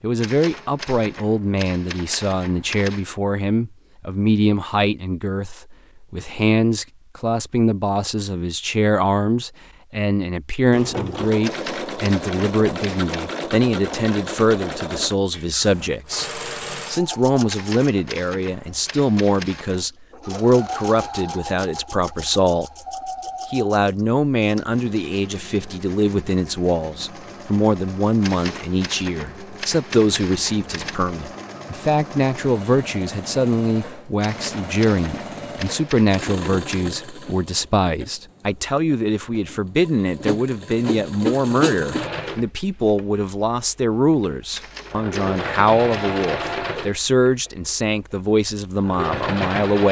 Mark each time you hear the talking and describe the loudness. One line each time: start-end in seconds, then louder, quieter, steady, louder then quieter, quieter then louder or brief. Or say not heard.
0.0-22.6 steady
23.5-49.8 steady.